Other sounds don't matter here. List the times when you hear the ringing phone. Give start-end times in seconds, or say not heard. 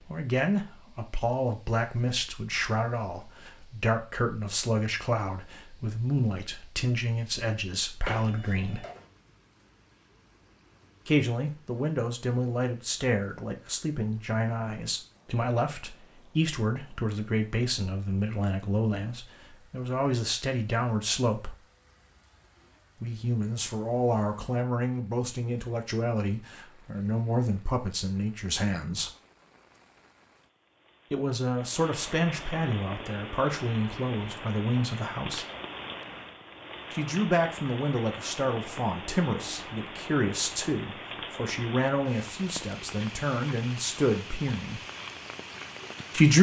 8.0-9.1.